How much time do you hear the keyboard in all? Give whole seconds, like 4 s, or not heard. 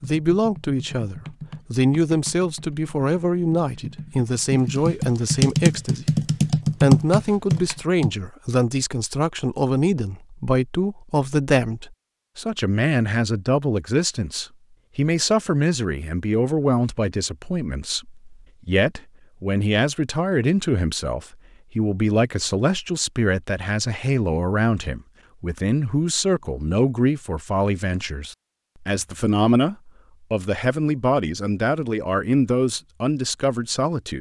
8 s.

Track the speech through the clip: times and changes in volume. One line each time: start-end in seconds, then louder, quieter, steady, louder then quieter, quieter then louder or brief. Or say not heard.
0.0-34.1 steady.